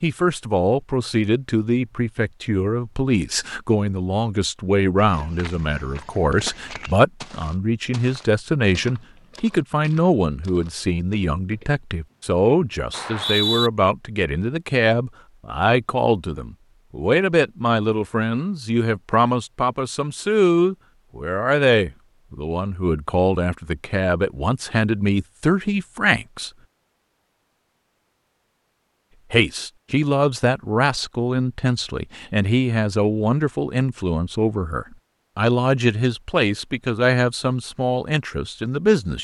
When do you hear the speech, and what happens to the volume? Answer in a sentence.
The speech can be heard from 0.0 to 26.5 s, at a steady volume; and from 29.3 to 39.1 s, at a steady volume.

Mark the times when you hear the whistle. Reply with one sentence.
You can hear the whistle from 12.9 to 13.7 s.